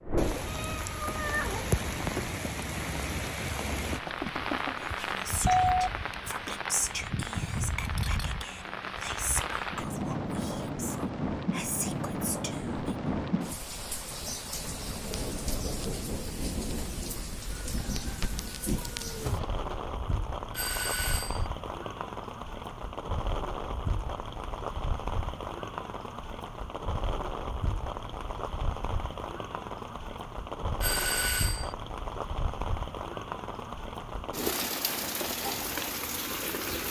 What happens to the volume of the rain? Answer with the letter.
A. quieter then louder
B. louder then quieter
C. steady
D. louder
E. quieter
C.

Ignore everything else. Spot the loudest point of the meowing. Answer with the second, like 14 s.
1 s.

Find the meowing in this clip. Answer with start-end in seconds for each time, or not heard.
0.3-2.3, 18.8-19.7.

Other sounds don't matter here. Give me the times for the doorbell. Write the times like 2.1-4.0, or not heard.
3.9-5.9, 20.6-21.4, 30.8-31.7.